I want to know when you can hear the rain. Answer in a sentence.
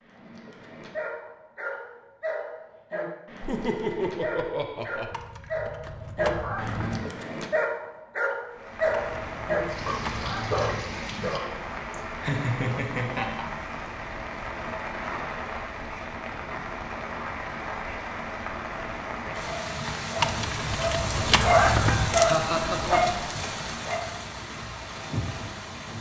You can hear the rain from 8.5 to 25.9 s.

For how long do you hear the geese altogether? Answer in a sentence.
You can hear the geese for 6 seconds altogether.